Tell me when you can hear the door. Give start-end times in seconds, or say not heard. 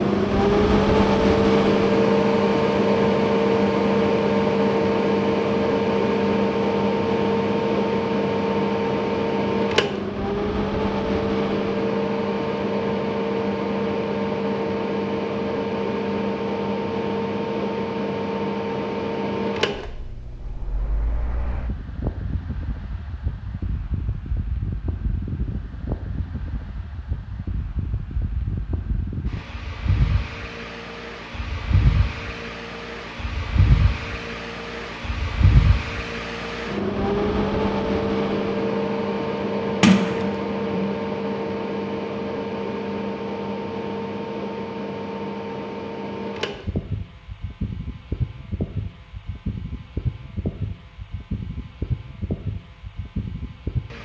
39.8-41.0.